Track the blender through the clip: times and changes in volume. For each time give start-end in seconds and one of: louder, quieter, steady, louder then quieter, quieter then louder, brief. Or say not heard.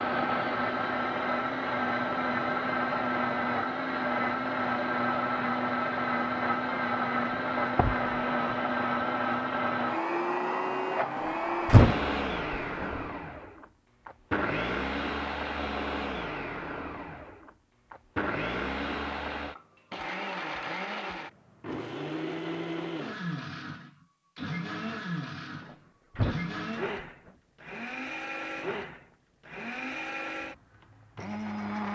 0.0-31.9 quieter.